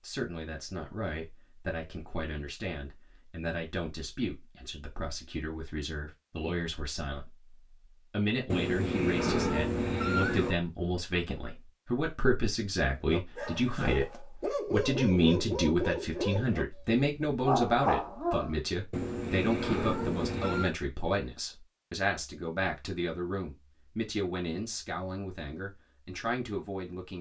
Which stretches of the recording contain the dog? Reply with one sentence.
You can hear the dog from 13.1 to 18.6 s.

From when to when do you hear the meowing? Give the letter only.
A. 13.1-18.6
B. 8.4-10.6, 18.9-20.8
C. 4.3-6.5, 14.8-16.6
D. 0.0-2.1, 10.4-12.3
B.